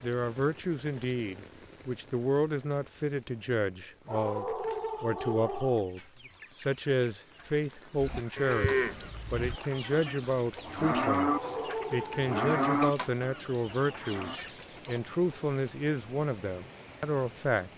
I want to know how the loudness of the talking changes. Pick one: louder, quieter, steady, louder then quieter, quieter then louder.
steady.